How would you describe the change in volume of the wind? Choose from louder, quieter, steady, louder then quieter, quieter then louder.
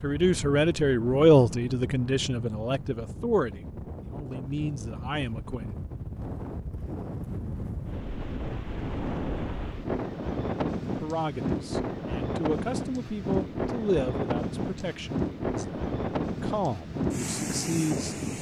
louder.